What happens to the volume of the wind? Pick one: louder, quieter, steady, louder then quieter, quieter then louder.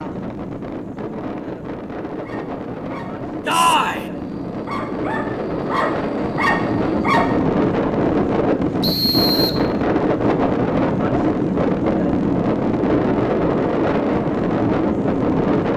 louder.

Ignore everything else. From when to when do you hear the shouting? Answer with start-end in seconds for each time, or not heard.
3.5-4.0.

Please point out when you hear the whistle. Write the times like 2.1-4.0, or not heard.
8.8-9.7.